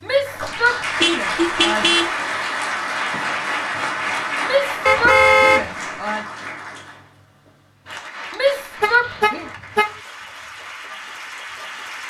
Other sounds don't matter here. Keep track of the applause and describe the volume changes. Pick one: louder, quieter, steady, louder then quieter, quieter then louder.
quieter.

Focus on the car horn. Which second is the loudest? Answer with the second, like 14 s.
5 s.